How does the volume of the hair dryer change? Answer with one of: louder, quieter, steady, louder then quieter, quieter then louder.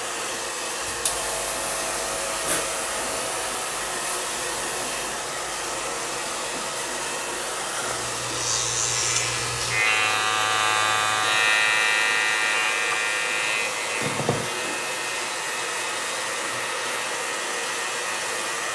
steady.